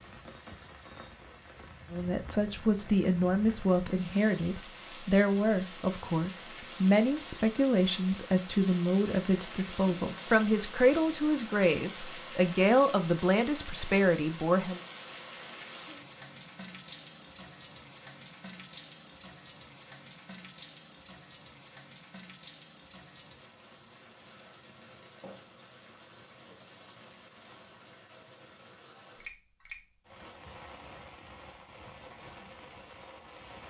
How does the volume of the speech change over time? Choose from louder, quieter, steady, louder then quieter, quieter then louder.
steady.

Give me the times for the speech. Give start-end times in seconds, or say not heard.
1.9-14.8.